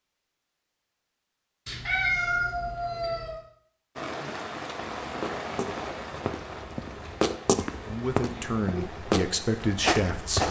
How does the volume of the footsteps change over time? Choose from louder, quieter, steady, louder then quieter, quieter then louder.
louder.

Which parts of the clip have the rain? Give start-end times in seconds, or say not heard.
4.0-10.4.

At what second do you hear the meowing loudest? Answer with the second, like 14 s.
2 s.